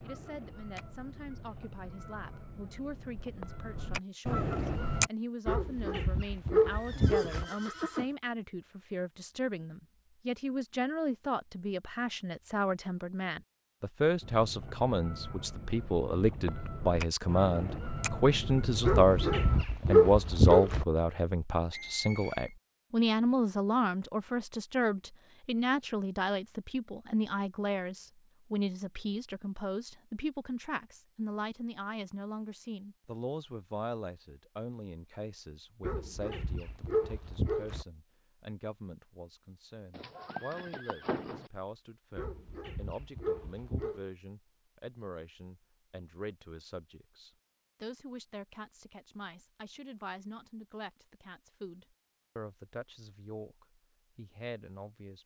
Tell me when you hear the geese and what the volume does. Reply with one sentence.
The geese can be heard from 0.0 to 5.1 s, getting louder; and from 14.2 to 19.6 s, getting louder.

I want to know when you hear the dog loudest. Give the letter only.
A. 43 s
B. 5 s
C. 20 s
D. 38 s
C.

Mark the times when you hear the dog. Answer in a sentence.
You can hear the dog from 5.5 to 7.5 s, from 18.9 to 20.9 s, from 35.8 to 37.9 s and from 42.1 to 44.0 s.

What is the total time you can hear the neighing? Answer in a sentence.
The neighing can be heard for 4 seconds in total.